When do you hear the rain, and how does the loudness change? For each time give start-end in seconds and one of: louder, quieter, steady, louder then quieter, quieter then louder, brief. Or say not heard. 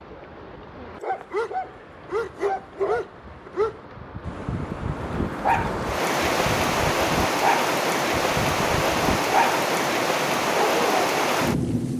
0.0-11.9 louder.